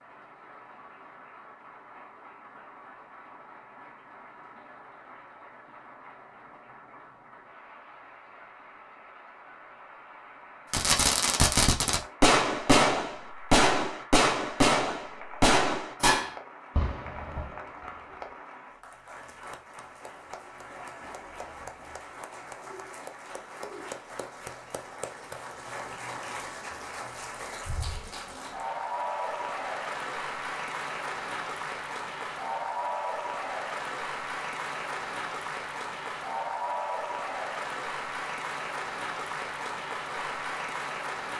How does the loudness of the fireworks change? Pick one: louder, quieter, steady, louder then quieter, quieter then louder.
quieter.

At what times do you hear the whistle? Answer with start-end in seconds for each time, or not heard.
not heard.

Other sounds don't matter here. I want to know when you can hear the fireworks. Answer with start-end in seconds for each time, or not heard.
10.7-17.9.